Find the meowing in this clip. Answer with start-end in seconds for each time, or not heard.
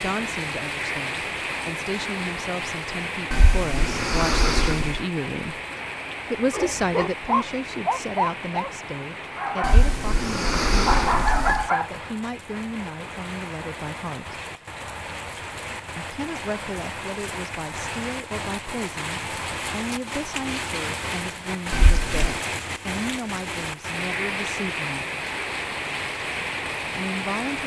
3.3-5.0, 9.6-11.7, 21.7-22.4.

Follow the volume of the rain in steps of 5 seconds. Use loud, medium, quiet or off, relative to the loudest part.
loud, medium, medium, loud, loud, loud.